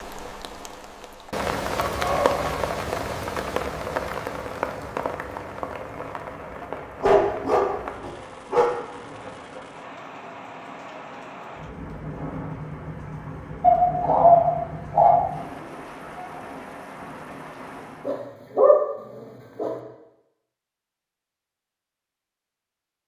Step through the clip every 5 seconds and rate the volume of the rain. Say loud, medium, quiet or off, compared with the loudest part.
loud, medium, medium, medium, off.